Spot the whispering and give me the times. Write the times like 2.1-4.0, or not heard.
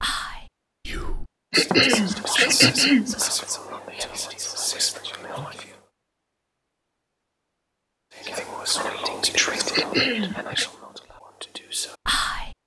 0.0-5.8, 8.2-12.6.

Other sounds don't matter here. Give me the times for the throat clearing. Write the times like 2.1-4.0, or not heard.
1.5-3.2, 9.7-10.7.